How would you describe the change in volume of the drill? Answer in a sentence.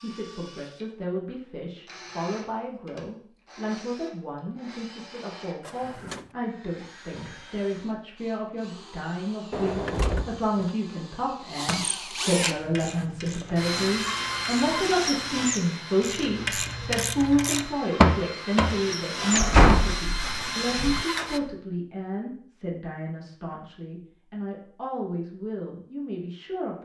The volume of the drill goes up.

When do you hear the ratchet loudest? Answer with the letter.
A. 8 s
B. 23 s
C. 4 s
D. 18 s
D.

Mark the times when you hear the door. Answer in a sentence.
The door can be heard from 5.6 to 6.3 s, from 9.5 to 10.7 s and from 19.3 to 21.1 s.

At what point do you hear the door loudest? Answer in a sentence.
The volume of the door peaks at 20 seconds.